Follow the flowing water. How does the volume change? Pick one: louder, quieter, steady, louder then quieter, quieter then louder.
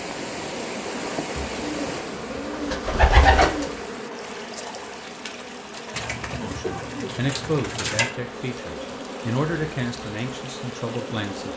quieter.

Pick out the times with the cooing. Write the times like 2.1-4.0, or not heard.
1.4-3.8, 5.9-8.1.